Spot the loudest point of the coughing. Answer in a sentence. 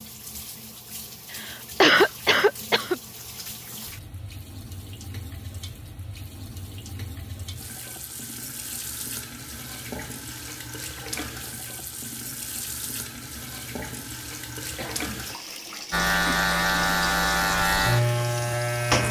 The loudest moment of the coughing is at 2 seconds.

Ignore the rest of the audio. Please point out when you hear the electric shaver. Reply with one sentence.
You can hear the electric shaver from 15.9 to 19.0 s.